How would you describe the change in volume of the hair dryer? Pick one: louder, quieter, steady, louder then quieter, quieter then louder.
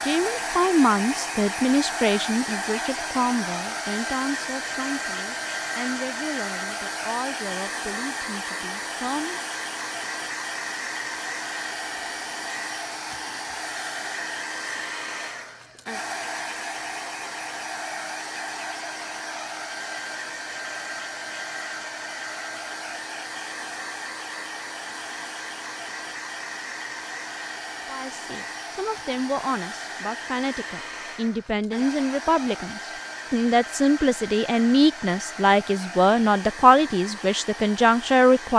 quieter.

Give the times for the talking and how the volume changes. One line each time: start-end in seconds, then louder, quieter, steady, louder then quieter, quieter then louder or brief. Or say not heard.
0.0-9.4 quieter
27.9-38.5 louder.